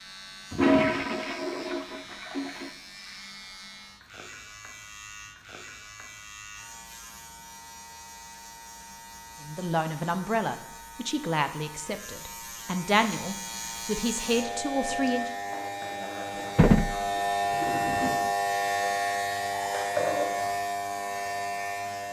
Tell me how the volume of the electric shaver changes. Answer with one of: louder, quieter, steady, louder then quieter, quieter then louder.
louder.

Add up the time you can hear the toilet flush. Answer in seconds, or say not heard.
4 s.